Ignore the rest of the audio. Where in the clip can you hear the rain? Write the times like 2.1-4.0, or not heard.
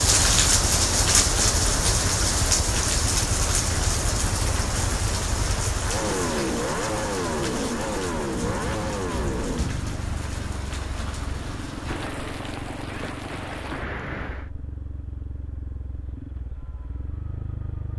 0.0-14.5.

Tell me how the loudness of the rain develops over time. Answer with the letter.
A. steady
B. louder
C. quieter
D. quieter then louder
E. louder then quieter
C.